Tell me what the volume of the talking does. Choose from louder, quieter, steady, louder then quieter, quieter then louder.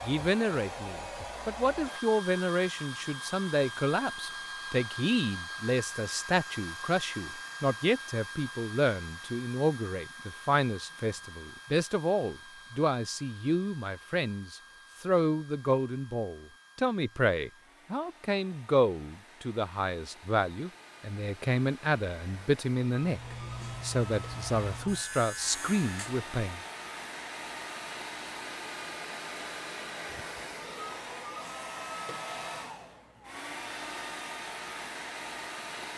steady.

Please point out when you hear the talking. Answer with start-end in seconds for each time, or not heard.
0.0-26.6.